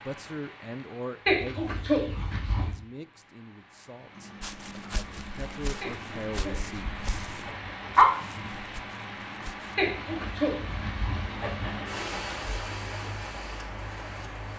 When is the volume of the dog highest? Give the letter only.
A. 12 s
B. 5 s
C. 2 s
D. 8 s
D.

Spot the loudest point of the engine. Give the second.
12 s.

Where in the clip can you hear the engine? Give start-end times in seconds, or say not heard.
4.1-14.5.